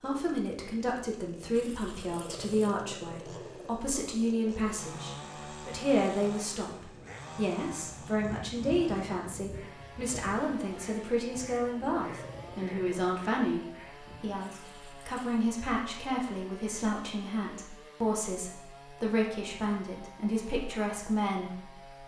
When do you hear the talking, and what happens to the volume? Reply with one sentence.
You can hear the talking from 0.0 to 22.0 s, at a steady volume.